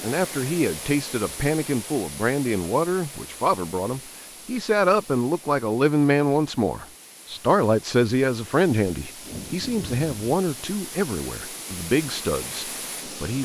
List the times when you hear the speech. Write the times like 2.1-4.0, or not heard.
0.0-13.3.